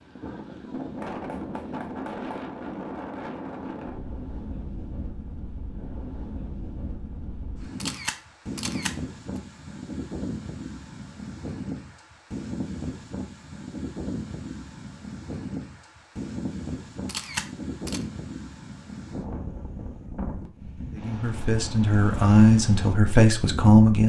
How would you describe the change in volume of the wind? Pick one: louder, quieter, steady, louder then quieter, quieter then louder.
steady.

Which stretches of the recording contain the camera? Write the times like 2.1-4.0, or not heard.
7.8-8.9, 17.1-18.1.